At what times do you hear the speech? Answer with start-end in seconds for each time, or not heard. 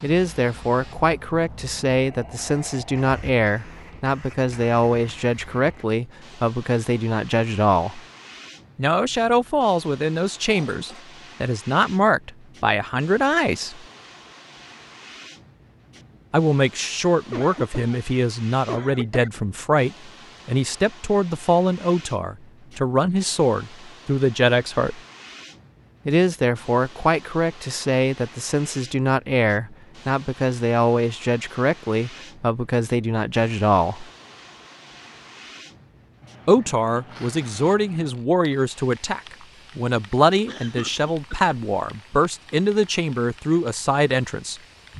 0.0-8.0, 8.8-13.8, 16.3-25.0, 26.1-34.0, 36.5-44.6.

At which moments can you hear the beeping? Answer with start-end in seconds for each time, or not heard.
not heard.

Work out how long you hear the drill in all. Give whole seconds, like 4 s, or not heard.
not heard.